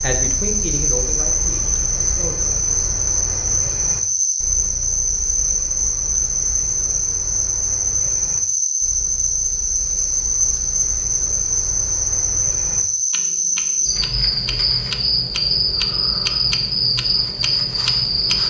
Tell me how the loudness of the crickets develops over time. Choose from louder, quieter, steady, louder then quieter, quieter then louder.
steady.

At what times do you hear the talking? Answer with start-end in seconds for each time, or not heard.
0.0-2.4.